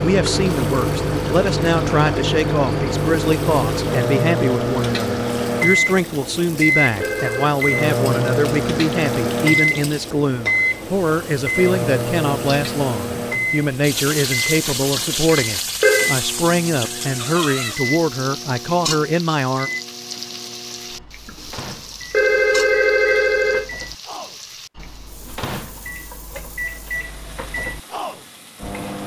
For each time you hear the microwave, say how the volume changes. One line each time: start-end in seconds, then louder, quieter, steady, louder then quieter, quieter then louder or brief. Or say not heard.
0.0-29.0 quieter.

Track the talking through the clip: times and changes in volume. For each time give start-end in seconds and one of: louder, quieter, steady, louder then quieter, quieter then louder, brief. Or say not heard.
0.0-19.7 steady.